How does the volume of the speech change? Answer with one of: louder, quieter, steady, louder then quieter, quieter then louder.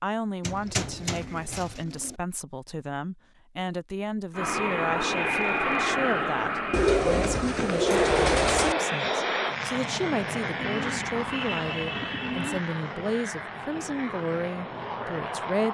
steady.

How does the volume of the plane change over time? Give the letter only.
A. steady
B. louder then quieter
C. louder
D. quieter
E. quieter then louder
D.